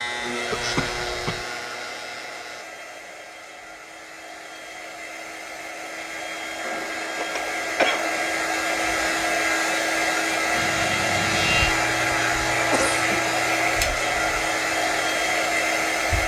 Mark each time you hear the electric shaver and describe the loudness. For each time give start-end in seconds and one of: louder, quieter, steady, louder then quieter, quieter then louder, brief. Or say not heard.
0.0-2.6 brief
10.5-16.2 quieter.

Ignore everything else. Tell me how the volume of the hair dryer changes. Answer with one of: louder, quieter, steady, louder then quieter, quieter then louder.
louder.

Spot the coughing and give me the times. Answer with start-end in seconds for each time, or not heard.
0.5-1.4, 6.6-8.2, 12.7-13.3.